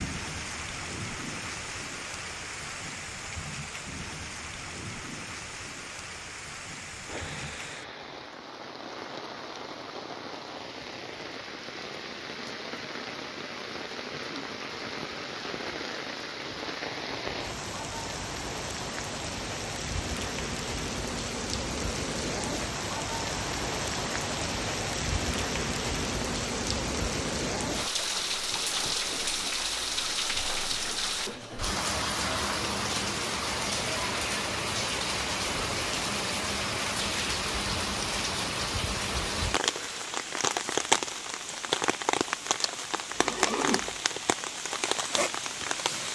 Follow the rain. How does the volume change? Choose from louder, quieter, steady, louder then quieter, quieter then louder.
louder.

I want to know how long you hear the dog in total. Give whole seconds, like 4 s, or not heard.
not heard.